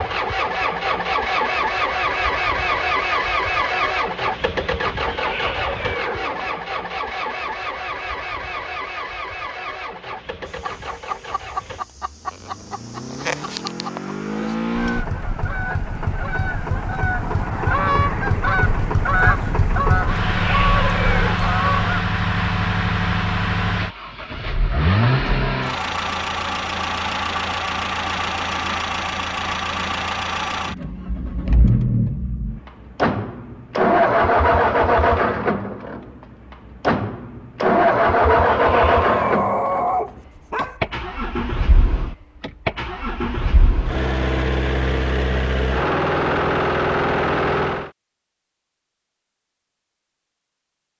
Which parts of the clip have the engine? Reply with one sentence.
You can hear the engine from 0.0 to 47.9 s.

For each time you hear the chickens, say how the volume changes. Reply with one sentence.
You can hear the chickens from 10.4 to 22.1 s, getting louder.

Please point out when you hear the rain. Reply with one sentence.
The rain can't be heard in this clip.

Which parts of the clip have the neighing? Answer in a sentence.
You can hear the neighing from 5.0 to 6.7 s, from 20.2 to 21.4 s and from 38.5 to 39.4 s.